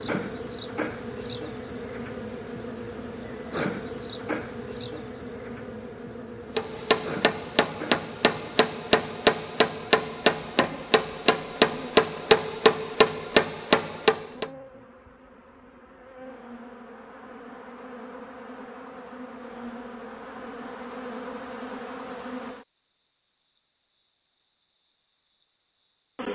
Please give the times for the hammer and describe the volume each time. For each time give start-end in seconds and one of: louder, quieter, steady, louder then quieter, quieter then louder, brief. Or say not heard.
6.5-14.5 louder.